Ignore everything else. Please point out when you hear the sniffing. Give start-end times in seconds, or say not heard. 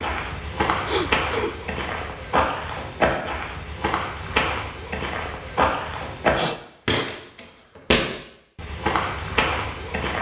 0.8-1.6, 6.3-7.0.